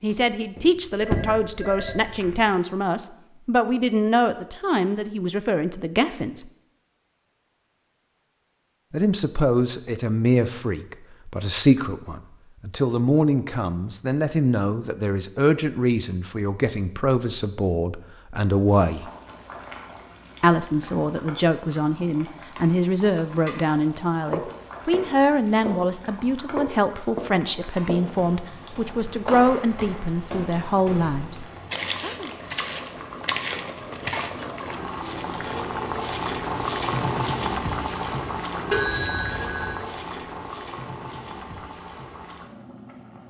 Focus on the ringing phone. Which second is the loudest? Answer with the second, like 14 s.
39 s.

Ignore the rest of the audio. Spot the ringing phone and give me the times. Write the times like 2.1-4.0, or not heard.
1.0-2.3, 38.7-39.9.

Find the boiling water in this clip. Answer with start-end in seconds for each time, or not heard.
18.6-43.2.